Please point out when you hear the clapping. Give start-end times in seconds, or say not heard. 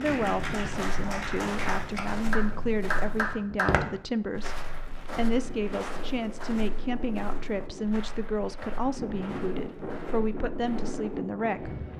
0.0-3.7.